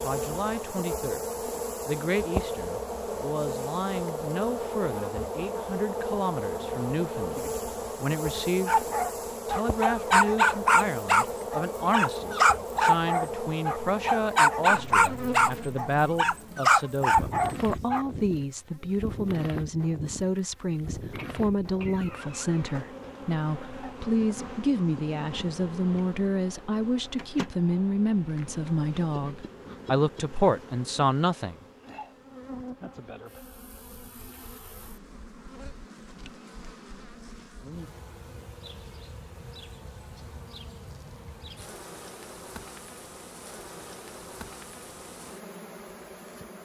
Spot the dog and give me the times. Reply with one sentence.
The dog can be heard from 8.7 to 18.1 s.